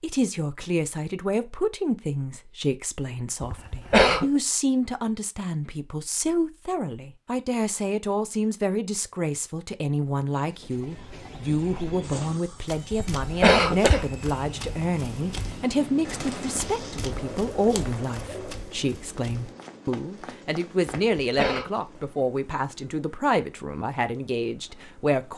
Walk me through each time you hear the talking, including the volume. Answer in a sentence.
You can hear the talking from 0.0 to 25.3 s, at a steady volume.